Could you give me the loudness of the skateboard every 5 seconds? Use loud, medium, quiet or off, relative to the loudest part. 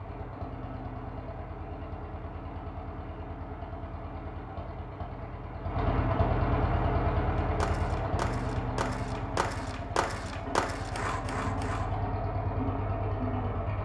off, loud, loud.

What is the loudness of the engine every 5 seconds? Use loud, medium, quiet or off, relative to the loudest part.
medium, loud, loud.